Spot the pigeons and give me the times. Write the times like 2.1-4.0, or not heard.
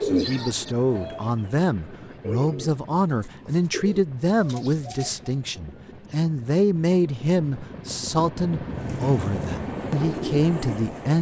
0.0-5.3, 8.8-11.1.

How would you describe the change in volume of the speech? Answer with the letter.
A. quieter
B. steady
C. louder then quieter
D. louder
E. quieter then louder
B.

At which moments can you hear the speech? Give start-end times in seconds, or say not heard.
0.0-11.1.